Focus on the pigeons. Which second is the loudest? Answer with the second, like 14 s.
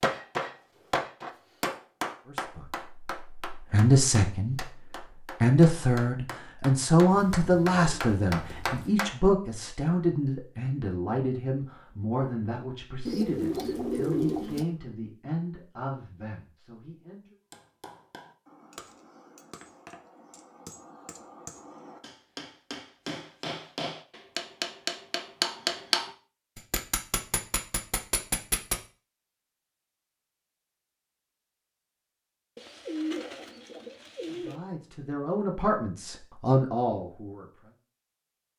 14 s.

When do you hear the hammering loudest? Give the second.
26 s.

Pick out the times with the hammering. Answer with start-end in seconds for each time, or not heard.
0.0-9.2, 17.5-28.8.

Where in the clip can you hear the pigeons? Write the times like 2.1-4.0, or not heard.
7.1-9.0, 13.1-14.7, 32.5-34.6.